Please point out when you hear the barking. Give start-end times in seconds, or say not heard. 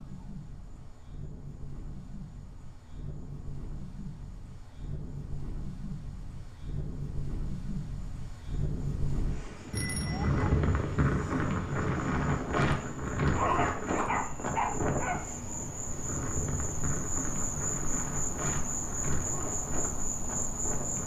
13.3-15.2.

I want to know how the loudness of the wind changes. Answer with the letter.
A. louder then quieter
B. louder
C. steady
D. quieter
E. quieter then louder
A.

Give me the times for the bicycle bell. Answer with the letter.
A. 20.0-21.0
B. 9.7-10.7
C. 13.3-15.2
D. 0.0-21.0
B.